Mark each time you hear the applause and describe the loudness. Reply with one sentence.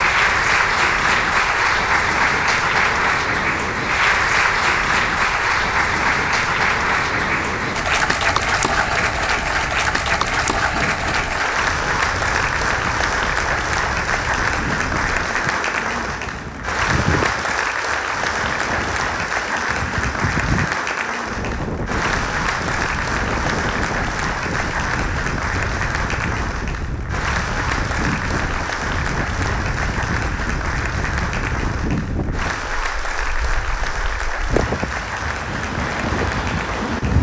You can hear the applause from 0.0 to 37.1 s, getting quieter.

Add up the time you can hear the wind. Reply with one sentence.
The wind can be heard for 37 seconds in total.